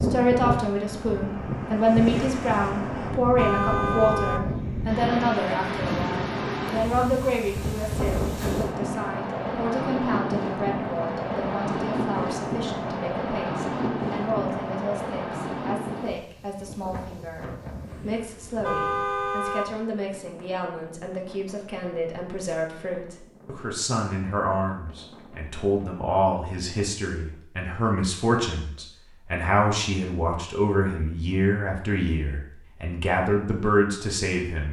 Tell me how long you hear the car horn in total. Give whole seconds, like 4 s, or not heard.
2 s.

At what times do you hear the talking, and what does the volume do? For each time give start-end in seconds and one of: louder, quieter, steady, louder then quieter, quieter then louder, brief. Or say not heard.
0.0-34.6 quieter then louder.